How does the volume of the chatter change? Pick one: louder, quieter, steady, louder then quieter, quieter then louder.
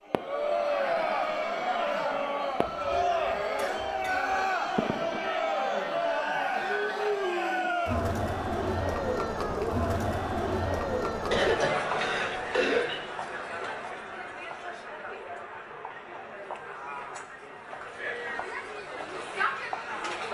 quieter.